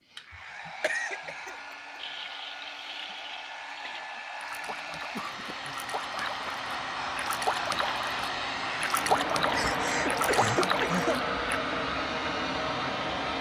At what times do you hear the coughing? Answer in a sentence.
You can hear the coughing from 0.8 to 1.8 s, from 5.0 to 6.6 s and from 9.5 to 11.2 s.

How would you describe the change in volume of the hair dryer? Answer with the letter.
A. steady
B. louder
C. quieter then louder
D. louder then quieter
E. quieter
B.